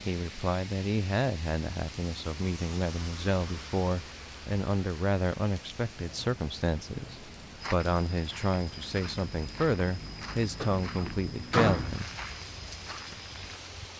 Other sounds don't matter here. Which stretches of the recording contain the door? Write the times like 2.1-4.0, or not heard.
10.6-11.9.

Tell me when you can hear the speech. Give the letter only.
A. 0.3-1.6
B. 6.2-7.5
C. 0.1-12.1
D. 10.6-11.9
C.